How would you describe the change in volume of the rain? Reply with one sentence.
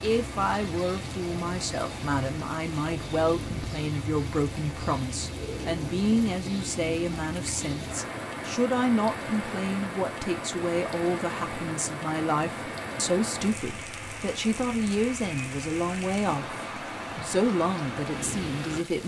The loudness of the rain stays about the same.